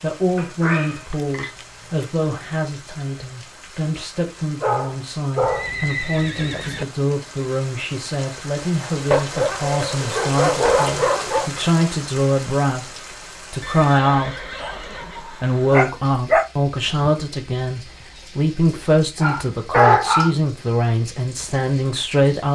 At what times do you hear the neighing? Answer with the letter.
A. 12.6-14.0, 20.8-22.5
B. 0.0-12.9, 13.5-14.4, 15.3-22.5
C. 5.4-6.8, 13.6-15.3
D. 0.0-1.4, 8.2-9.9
C.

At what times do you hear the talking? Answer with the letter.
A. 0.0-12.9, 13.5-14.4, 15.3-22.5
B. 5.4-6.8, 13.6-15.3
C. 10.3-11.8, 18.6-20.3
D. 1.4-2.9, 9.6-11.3
A.